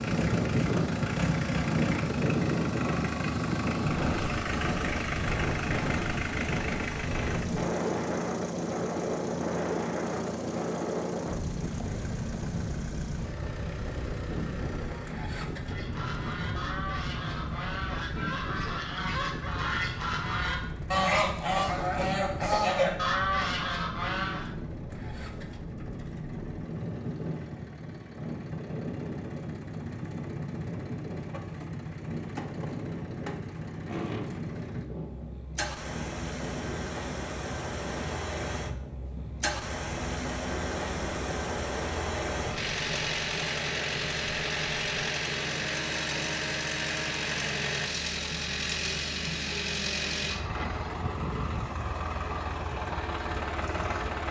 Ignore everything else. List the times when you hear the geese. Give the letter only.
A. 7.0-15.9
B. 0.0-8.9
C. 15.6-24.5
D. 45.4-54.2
C.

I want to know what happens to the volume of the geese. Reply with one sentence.
The loudness of the geese goes up.